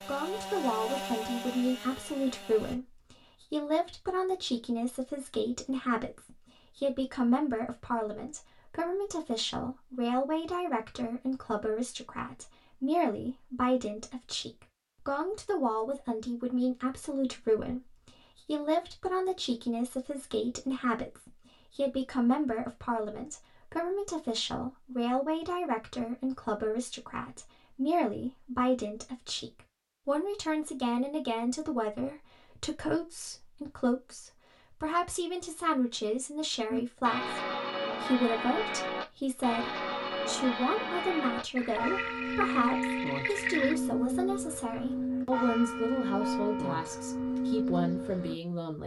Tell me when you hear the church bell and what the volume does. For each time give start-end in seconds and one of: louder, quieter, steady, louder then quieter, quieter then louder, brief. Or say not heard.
36.6-48.4 steady.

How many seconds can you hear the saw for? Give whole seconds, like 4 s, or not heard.
3 s.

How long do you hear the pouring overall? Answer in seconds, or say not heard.
2 s.